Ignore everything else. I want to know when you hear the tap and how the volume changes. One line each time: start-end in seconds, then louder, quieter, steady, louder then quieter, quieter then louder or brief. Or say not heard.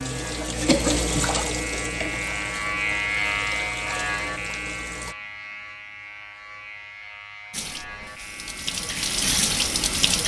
0.0-5.2 quieter
7.5-10.2 brief.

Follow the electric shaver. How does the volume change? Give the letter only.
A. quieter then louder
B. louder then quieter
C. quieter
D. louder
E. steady
B.